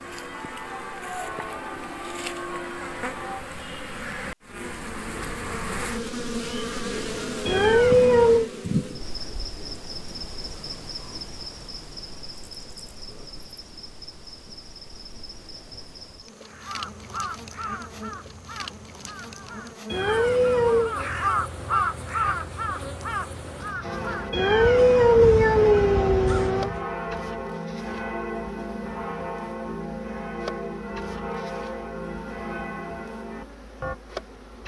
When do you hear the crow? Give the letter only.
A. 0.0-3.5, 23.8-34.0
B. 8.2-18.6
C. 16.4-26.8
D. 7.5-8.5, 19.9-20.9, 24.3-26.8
C.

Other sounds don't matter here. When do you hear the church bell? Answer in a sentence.
You can hear the church bell from 0.0 to 3.5 s and from 23.8 to 34.0 s.